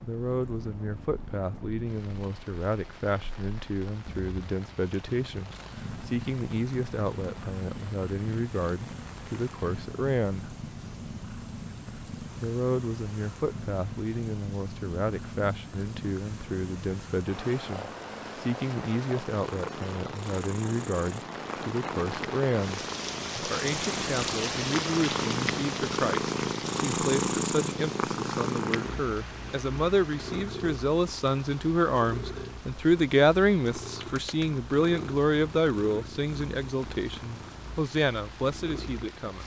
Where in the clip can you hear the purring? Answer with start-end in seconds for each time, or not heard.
0.2-39.4.